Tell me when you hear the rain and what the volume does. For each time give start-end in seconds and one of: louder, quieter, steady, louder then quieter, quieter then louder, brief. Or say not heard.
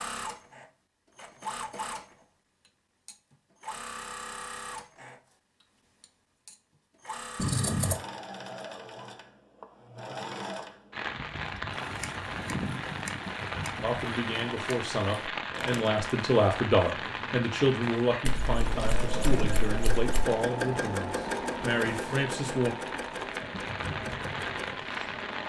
10.9-25.4 quieter then louder.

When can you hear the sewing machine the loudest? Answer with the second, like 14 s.
21 s.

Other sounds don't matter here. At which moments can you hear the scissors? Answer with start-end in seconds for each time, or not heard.
7.3-8.0, 18.2-20.2.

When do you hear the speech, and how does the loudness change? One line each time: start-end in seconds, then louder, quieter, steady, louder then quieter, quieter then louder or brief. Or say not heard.
13.8-22.8 louder then quieter.